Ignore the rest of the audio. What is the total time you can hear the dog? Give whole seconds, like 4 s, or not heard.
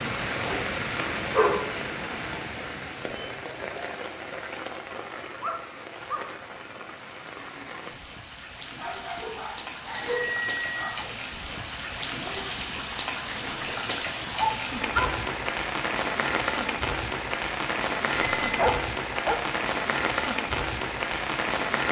7 s.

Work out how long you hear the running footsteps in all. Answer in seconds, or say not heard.
not heard.